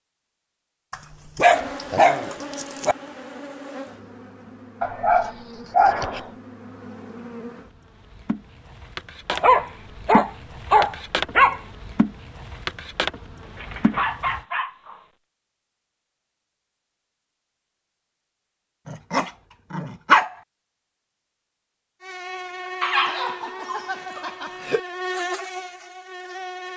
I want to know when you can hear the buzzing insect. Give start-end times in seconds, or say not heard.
1.4-14.4, 22.0-26.7.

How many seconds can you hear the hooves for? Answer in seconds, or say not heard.
not heard.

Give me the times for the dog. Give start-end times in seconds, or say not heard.
0.9-3.0, 4.8-6.3, 9.3-11.6, 13.4-15.0, 18.9-20.3, 22.8-24.8.